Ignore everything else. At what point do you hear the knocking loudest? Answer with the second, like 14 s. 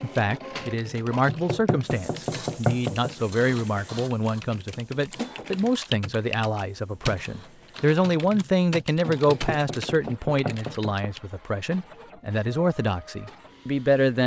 3 s.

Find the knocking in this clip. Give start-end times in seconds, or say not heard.
1.2-3.1, 9.2-10.9.